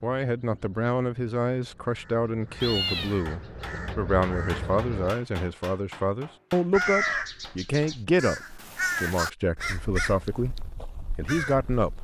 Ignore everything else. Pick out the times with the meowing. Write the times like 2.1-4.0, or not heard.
2.6-3.2.